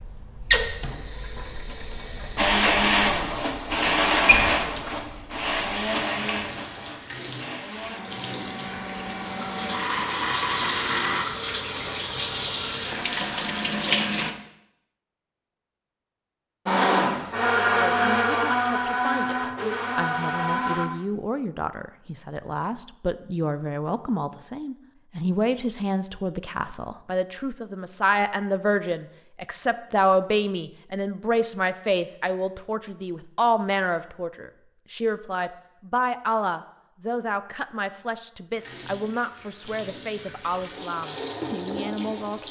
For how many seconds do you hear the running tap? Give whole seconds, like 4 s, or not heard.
18 s.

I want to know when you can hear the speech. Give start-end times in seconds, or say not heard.
17.6-42.4.